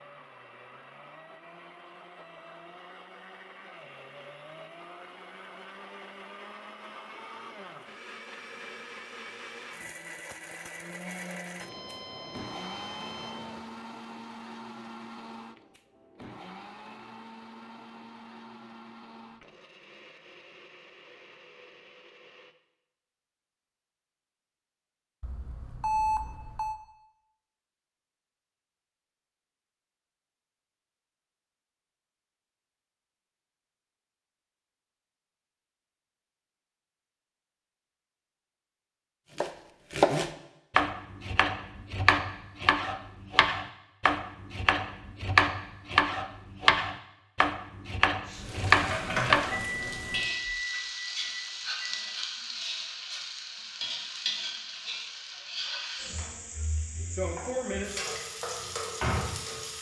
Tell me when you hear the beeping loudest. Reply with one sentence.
The volume of the beeping peaks at 26 seconds.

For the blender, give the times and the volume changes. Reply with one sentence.
The blender can be heard from 0.0 to 22.6 s, getting louder then quieter.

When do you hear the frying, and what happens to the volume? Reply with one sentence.
You can hear the frying from 48.2 to 59.7 s, getting quieter then louder.